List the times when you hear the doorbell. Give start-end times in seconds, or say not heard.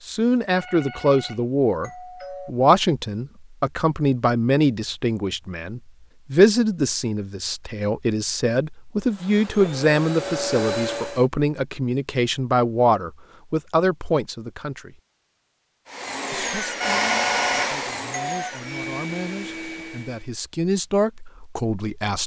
0.5-2.5, 16.8-18.4.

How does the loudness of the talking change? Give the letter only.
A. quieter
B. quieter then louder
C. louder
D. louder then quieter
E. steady
A.